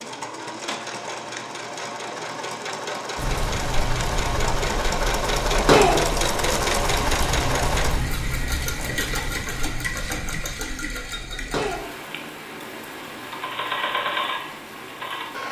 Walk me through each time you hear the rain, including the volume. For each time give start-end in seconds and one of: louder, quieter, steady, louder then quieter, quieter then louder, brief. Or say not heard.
3.1-15.4 quieter.